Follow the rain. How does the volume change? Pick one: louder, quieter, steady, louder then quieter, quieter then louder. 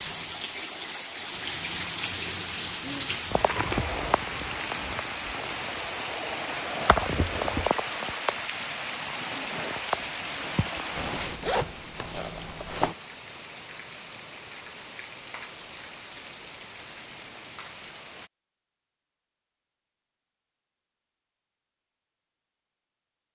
quieter.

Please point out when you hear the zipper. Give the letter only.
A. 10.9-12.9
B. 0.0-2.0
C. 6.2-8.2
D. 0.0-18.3
A.